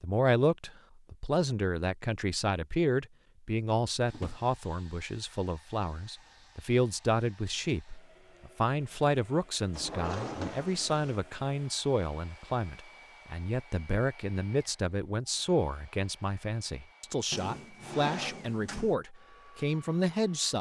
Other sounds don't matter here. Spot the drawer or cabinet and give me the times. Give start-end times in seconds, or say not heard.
4.1-4.5, 9.7-11.2, 17.3-18.9.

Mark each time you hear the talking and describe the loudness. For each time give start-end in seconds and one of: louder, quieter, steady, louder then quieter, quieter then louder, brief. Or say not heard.
0.0-20.5 steady.